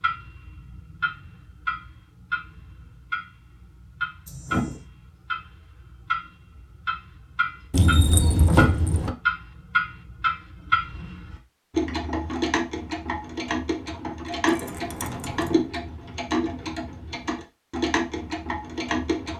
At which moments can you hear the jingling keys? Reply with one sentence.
You can hear the jingling keys from 4.2 to 4.8 s, from 7.7 to 9.2 s and from 14.4 to 15.7 s.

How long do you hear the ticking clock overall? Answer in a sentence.
The ticking clock can be heard for 19 seconds in total.